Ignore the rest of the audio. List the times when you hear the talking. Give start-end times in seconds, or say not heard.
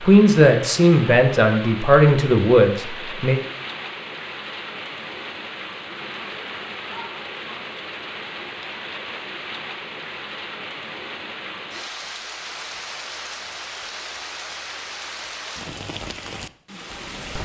0.0-3.4.